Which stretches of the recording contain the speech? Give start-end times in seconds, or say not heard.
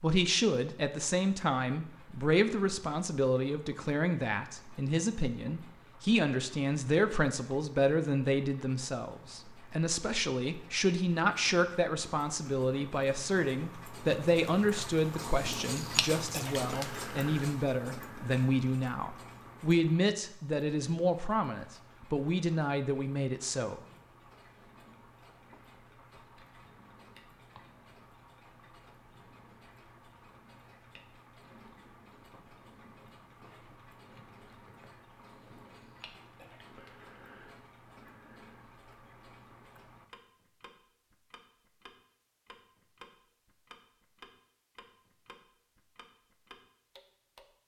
0.0-23.8.